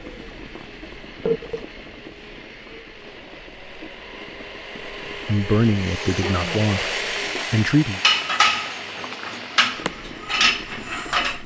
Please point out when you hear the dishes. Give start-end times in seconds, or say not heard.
5.8-11.4.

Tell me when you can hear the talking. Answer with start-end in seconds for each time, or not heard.
5.2-8.0.